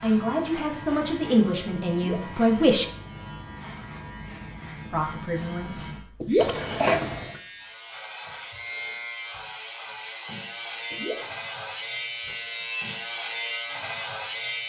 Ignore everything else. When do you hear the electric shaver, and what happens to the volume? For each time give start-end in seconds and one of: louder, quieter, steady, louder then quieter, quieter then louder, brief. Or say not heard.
0.0-14.6 louder.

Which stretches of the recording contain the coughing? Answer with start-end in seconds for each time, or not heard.
6.3-7.4.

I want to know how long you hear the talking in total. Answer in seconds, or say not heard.
4 s.